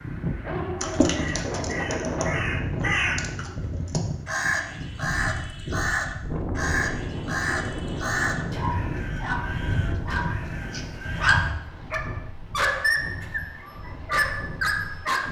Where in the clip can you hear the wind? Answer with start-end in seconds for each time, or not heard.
0.0-15.2.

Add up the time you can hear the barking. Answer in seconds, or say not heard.
9 s.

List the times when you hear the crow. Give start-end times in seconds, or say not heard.
0.8-11.6.